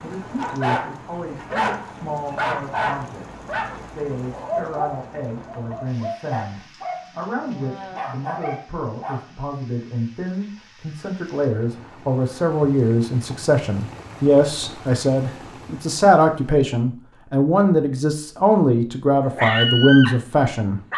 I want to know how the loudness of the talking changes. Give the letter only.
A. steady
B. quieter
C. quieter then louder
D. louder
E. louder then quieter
D.